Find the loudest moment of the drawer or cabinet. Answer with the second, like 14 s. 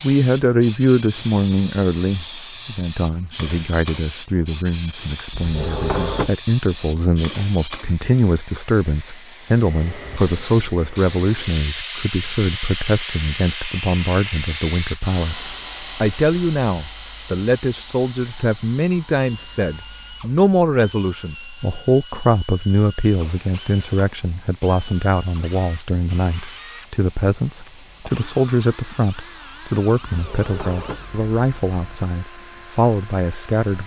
6 s.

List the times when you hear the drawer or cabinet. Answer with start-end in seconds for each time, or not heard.
5.3-6.3, 30.1-32.0.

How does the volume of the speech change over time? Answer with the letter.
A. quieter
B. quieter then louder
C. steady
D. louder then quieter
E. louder
C.